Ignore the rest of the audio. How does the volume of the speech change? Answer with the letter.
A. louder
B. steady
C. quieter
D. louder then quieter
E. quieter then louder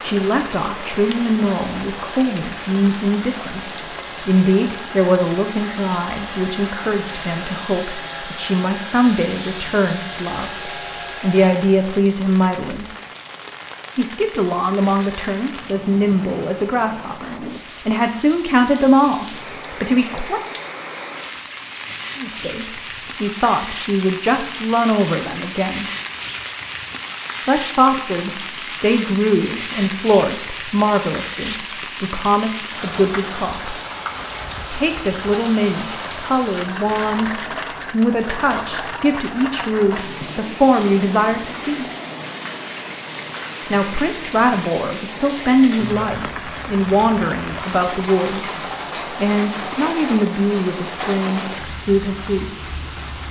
B.